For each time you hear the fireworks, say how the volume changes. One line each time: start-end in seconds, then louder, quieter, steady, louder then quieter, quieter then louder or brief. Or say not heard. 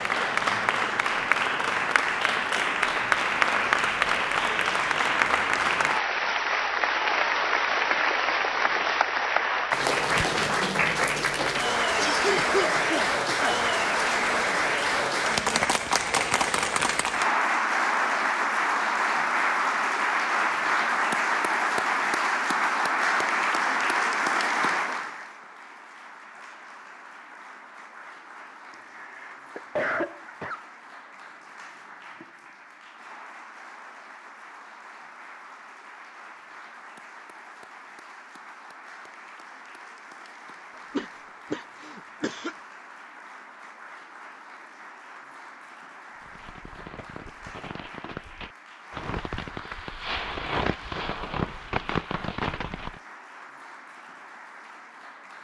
46.1-53.0 louder.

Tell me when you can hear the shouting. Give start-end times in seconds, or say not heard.
not heard.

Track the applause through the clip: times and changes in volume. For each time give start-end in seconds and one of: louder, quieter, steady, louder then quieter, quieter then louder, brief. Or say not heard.
0.0-55.3 quieter.